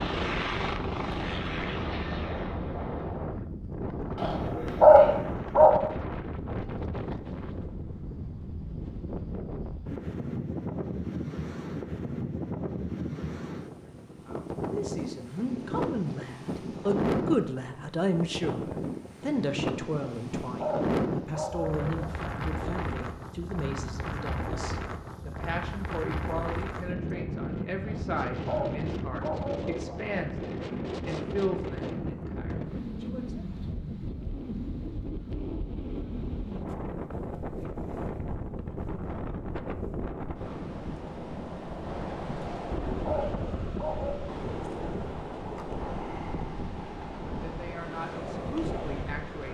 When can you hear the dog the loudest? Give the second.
5 s.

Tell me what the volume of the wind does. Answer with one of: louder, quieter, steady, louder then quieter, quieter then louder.
steady.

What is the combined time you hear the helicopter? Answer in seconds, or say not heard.
3 s.